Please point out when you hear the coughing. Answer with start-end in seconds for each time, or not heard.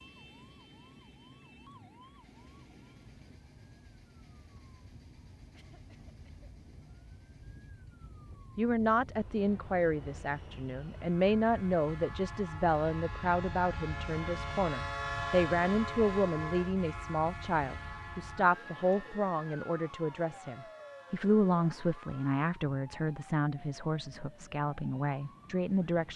5.5-6.5.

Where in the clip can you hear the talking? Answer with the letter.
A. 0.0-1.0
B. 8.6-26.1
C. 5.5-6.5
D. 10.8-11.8
B.